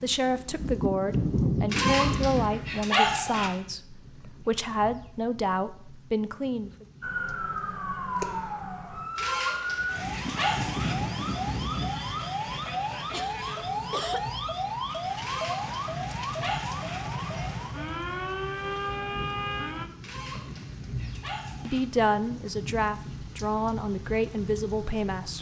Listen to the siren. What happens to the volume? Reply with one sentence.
The loudness of the siren stays about the same.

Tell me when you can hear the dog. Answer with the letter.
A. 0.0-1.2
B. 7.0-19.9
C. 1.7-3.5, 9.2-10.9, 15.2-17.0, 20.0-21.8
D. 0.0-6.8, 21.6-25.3
C.